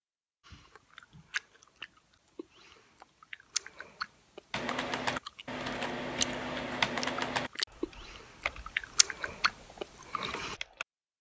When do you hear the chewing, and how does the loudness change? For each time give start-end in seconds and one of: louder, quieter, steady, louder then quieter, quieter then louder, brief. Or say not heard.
0.5-10.6 louder.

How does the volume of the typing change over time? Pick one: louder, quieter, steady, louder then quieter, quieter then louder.
quieter.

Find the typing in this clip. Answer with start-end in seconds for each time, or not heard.
4.5-10.8.